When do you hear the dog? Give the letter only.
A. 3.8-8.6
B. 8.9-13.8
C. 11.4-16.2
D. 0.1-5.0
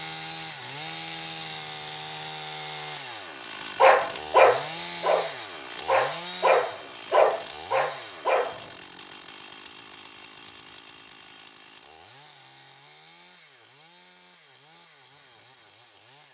A.